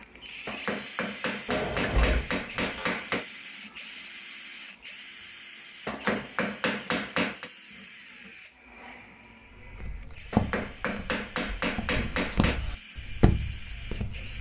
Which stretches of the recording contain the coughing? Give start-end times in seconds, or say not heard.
not heard.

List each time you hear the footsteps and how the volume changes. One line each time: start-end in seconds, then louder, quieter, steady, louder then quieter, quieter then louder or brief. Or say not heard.
9.7-14.3 quieter then louder.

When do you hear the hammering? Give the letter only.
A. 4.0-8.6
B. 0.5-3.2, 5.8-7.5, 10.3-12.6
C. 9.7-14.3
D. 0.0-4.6
B.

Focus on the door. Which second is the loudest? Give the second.
2 s.